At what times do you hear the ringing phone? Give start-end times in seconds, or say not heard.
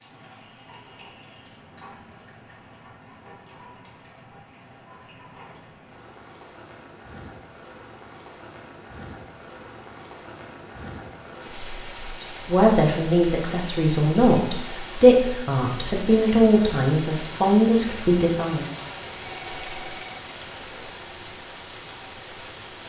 19.2-20.2.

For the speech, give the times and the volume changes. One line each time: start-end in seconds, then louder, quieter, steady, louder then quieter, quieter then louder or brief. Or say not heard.
12.2-18.7 steady.